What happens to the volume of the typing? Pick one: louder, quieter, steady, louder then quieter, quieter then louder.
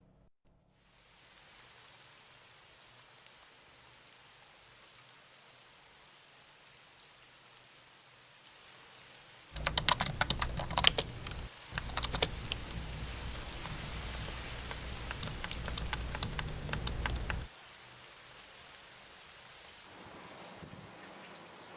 quieter then louder.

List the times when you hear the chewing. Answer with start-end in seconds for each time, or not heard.
not heard.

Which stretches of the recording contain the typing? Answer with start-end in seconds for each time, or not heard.
9.5-17.5.